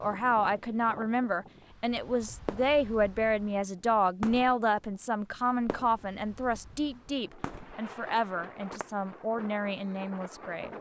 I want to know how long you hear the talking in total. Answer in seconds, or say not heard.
11 s.